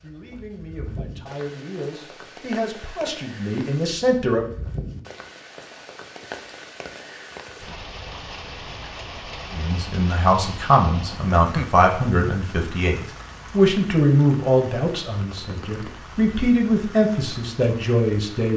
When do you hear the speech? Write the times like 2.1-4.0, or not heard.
0.0-4.5, 9.5-18.5.